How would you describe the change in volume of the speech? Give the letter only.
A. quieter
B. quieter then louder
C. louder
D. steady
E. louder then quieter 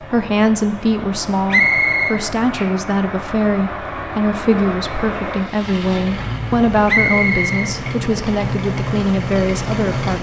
D.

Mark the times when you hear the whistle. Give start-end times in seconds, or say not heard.
1.5-2.2, 6.8-7.7.